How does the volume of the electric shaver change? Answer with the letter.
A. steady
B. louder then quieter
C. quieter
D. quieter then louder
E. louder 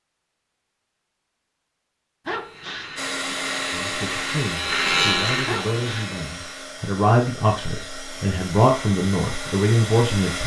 B.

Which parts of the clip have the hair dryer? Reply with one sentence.
You can hear the hair dryer from 3.0 to 10.4 s.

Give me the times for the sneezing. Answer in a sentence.
The sneezing can be heard from 2.2 to 3.4 s and from 5.5 to 6.2 s.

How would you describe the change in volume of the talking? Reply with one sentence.
The volume of the talking goes up.